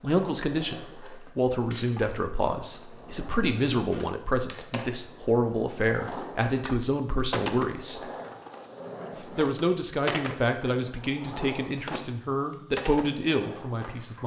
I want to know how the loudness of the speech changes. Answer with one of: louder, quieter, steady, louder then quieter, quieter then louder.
steady.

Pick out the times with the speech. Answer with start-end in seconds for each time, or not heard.
0.0-8.1, 9.2-14.2.